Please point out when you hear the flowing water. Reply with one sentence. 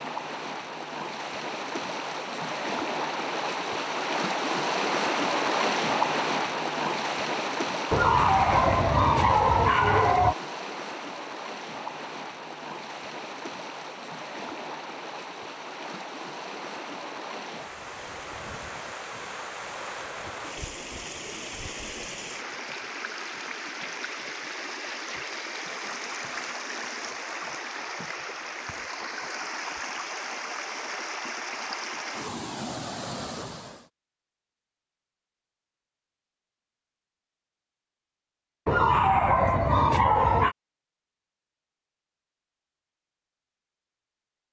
You can hear the flowing water from 0.0 to 33.9 s.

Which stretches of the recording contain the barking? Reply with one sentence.
You can hear the barking from 7.9 to 10.3 s and from 38.6 to 40.5 s.